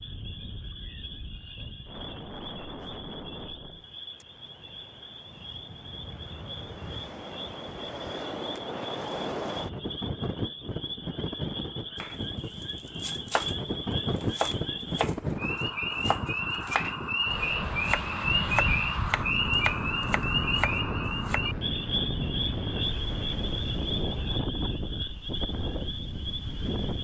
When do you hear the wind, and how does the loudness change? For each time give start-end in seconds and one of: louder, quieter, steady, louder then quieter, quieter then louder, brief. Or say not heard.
0.0-26.9 louder.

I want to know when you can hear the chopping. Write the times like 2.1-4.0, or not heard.
11.9-21.4.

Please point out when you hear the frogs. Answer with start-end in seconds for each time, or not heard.
0.0-26.9.